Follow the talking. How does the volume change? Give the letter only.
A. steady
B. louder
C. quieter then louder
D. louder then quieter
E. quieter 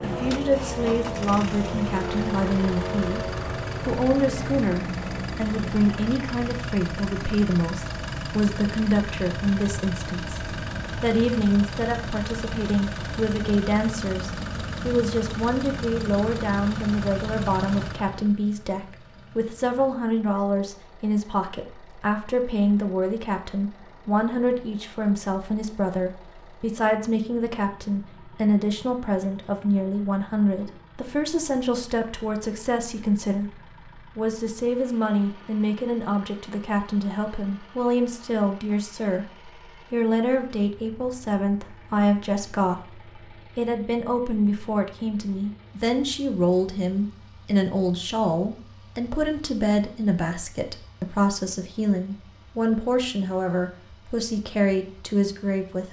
A.